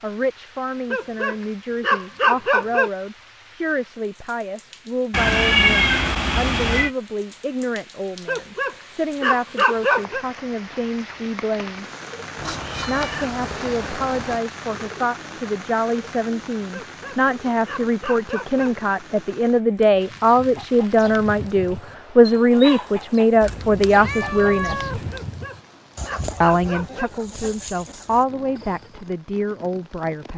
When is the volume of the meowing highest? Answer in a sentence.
The volume of the meowing peaks at 6 seconds.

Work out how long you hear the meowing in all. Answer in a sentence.
The meowing can be heard for 6 seconds in total.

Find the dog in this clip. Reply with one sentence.
You can hear the dog from 0.9 to 2.9 s, from 8.2 to 10.2 s, from 16.7 to 18.7 s and from 25.1 to 27.1 s.